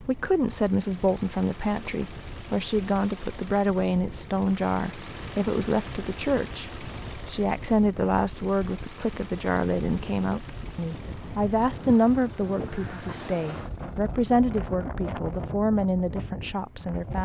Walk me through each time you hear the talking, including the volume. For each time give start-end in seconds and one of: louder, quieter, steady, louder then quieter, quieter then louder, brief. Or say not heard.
0.0-17.2 steady.